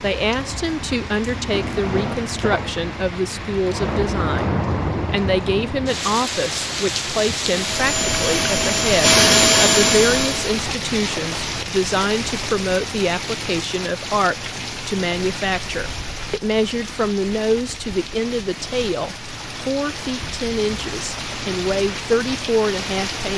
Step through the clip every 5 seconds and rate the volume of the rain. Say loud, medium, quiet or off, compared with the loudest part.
loud, loud, loud, medium, loud.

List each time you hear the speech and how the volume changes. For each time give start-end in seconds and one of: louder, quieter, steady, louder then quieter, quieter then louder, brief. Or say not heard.
0.0-23.3 steady.